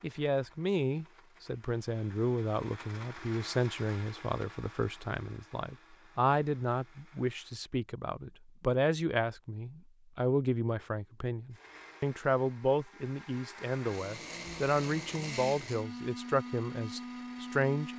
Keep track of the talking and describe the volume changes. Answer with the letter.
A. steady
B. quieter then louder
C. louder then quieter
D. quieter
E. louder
A.